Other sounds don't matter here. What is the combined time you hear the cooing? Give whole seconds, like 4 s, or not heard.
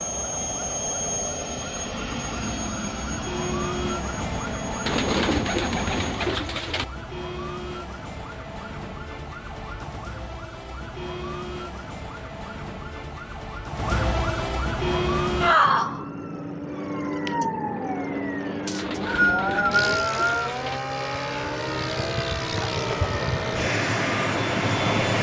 4 s.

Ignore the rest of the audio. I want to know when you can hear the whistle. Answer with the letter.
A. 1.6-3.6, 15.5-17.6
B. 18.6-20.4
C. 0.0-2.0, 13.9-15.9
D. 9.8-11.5
B.